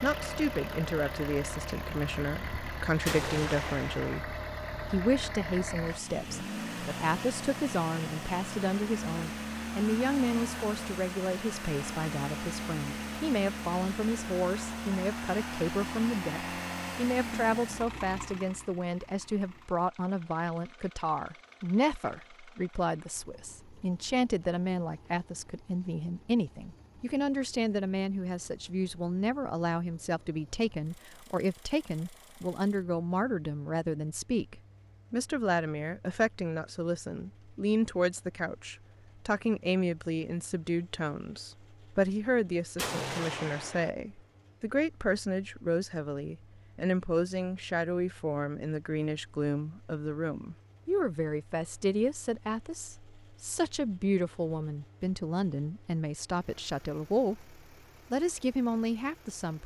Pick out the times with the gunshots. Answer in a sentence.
The gunshots can be heard from 3.0 to 4.2 s and from 42.8 to 43.9 s.